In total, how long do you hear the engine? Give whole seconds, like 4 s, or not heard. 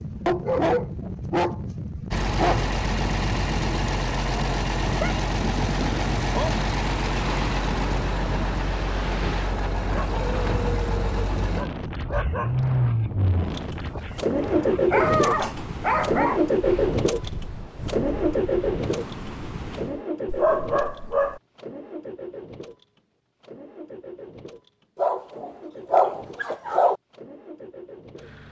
26 s.